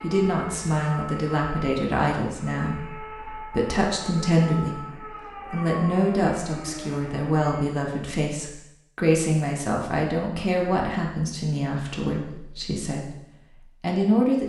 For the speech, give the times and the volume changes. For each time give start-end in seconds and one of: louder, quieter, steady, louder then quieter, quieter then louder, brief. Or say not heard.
0.0-13.2 steady
13.8-14.4 brief.